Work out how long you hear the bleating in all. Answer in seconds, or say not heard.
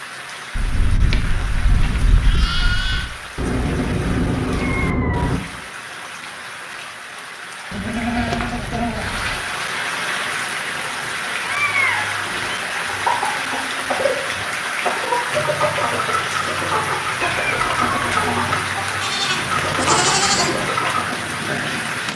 6 s.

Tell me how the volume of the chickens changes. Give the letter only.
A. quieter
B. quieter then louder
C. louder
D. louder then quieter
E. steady
E.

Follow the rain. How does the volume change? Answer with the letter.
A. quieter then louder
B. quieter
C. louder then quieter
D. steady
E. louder
E.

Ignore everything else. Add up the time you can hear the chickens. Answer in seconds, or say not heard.
9 s.